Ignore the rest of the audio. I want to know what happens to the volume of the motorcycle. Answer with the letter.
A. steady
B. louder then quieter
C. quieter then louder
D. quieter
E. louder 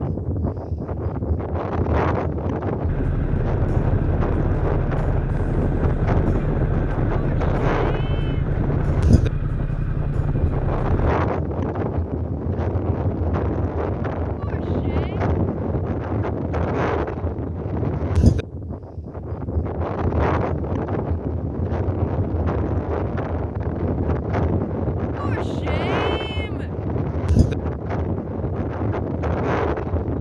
A.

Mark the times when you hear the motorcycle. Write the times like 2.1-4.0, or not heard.
2.9-11.1.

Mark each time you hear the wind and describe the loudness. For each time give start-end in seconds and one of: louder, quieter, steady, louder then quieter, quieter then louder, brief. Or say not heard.
0.0-30.1 steady.